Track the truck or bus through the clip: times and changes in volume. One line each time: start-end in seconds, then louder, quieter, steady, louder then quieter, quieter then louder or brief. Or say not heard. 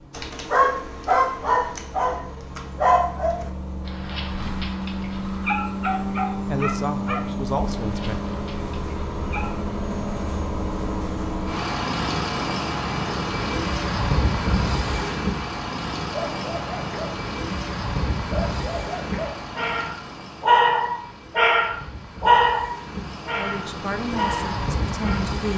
0.0-25.5 louder then quieter.